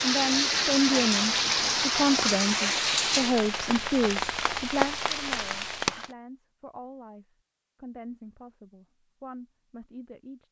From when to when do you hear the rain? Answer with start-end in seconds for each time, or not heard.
0.0-6.1.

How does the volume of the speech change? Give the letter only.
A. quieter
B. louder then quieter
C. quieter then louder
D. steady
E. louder
A.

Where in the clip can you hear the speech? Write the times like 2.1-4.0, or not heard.
0.0-10.4.